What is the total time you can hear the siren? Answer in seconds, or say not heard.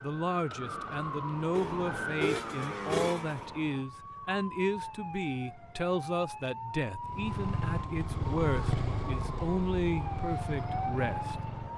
12 s.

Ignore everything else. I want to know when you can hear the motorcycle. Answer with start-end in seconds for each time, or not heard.
1.4-3.5, 7.0-11.7.